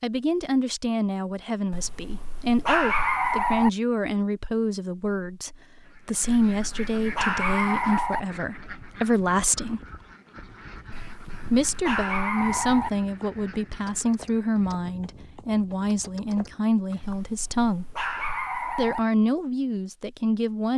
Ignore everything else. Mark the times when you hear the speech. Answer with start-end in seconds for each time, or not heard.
0.0-9.8, 11.5-17.9, 18.8-20.7.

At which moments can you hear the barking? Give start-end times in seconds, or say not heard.
1.7-3.7, 6.2-8.2, 10.9-12.9, 17.0-19.0.